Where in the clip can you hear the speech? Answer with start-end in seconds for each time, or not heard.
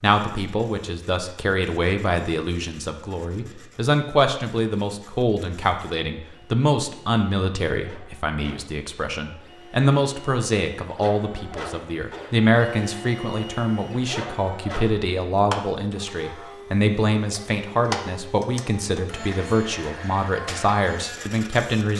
0.0-21.9.